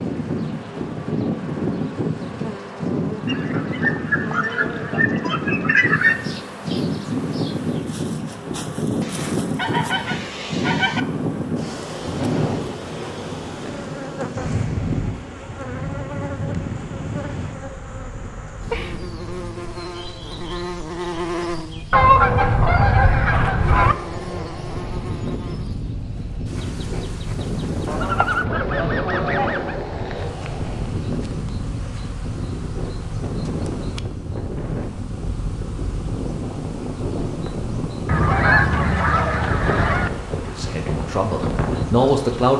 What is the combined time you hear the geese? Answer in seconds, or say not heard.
11 s.